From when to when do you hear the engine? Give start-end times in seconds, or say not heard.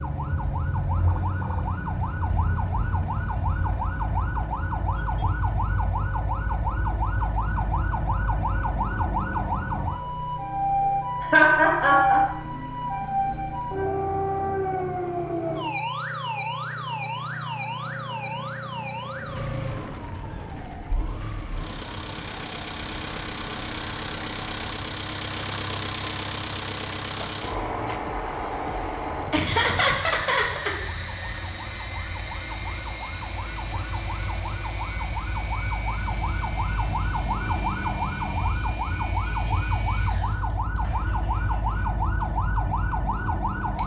0.0-43.8.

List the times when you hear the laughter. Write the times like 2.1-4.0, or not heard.
11.2-12.3, 29.3-30.7.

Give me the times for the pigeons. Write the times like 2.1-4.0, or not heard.
not heard.